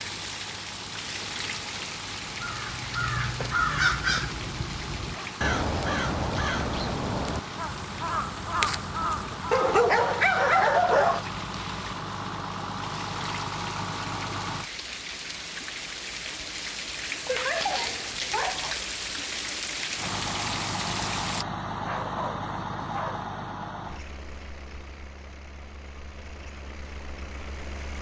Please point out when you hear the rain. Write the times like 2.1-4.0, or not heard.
0.0-21.4.